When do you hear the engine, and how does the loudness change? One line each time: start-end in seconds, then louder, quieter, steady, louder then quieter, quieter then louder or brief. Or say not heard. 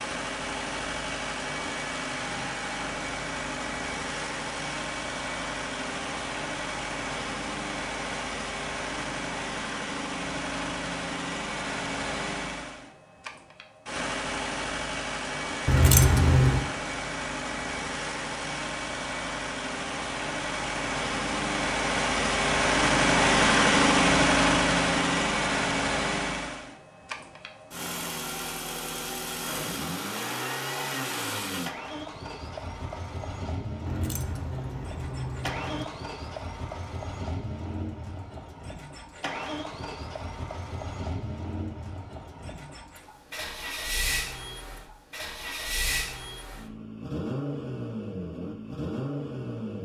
0.0-49.8 louder then quieter.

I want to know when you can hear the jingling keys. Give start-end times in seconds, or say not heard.
15.7-16.7, 33.9-35.9.